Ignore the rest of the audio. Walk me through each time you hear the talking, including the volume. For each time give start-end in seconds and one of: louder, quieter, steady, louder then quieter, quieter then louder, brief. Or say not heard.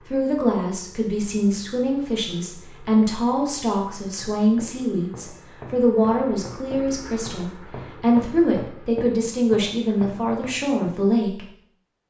0.1-11.4 steady.